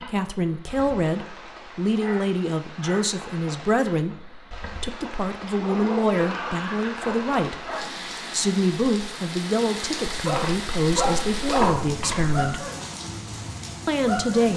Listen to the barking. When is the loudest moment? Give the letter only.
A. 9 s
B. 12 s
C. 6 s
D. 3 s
B.